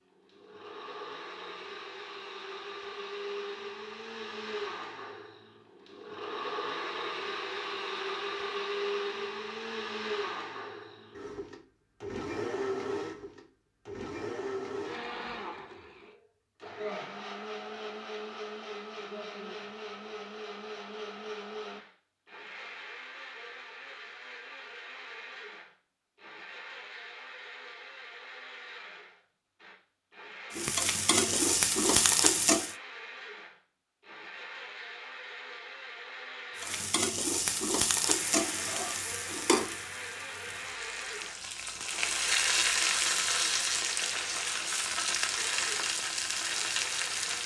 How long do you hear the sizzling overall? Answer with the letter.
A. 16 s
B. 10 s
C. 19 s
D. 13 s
D.